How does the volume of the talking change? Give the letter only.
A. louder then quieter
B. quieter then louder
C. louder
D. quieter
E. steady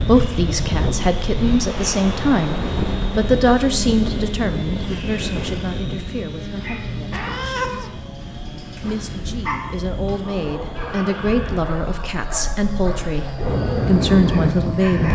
B.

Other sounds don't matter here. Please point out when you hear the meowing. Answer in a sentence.
The meowing can be heard from 7.1 to 7.9 s.